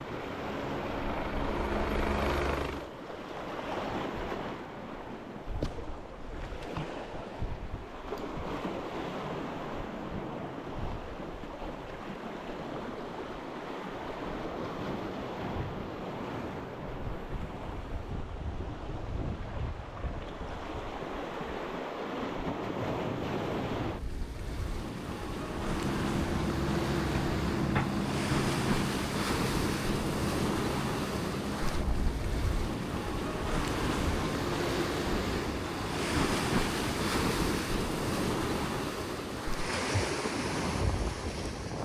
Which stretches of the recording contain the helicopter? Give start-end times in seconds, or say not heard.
0.0-2.9, 25.4-32.2.